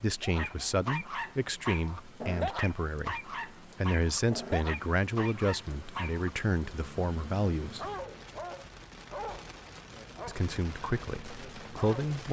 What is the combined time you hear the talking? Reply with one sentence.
You can hear the talking for 10 seconds altogether.